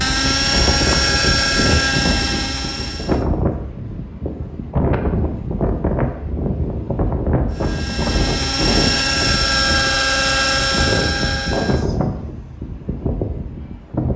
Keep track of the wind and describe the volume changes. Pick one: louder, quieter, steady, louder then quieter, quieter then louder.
steady.